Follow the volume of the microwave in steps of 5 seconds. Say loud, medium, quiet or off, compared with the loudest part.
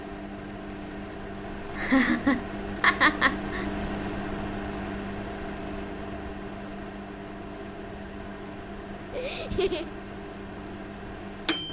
loud, medium, loud.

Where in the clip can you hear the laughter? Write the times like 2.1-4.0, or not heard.
1.8-3.6, 9.1-9.9.